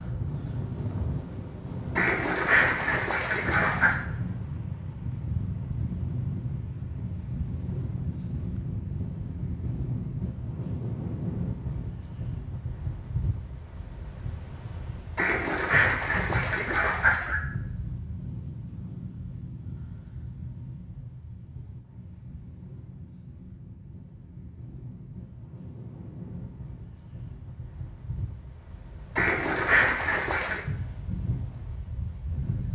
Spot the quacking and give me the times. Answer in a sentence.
The quacking can be heard from 1.9 to 4.0 s, from 15.2 to 17.4 s and from 29.1 to 30.6 s.